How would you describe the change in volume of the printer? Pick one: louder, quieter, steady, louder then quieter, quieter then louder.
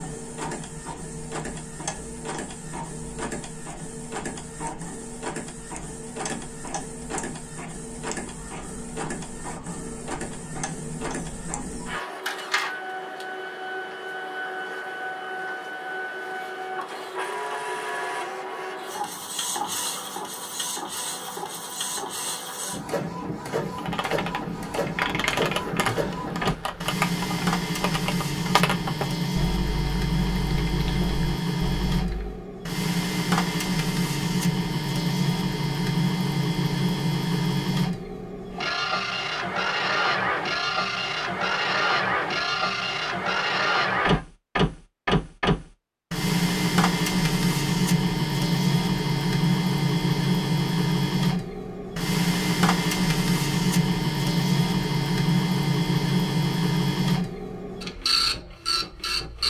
louder.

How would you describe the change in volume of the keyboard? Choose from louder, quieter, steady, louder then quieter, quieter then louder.
quieter.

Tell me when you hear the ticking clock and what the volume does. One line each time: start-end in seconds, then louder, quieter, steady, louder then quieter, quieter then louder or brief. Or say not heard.
not heard.